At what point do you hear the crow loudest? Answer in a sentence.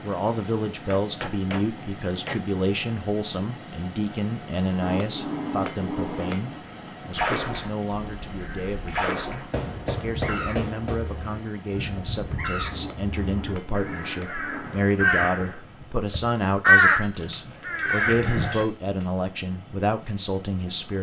The loudest moment of the crow is at 17 seconds.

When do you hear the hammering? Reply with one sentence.
You can hear the hammering from 0.9 to 2.4 s, from 4.8 to 6.6 s, from 9.5 to 11.0 s, from 12.7 to 14.9 s and from 17.0 to 19.1 s.